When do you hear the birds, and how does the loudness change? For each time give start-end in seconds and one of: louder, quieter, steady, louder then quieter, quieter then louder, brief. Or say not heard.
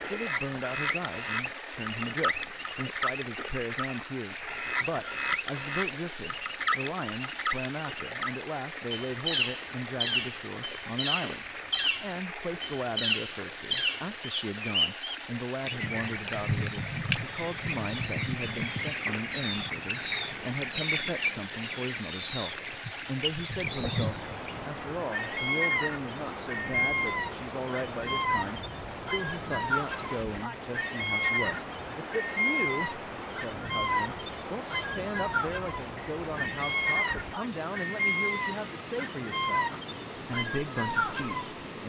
0.0-41.8 steady.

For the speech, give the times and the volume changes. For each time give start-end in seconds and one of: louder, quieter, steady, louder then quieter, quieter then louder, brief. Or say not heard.
0.1-41.8 steady.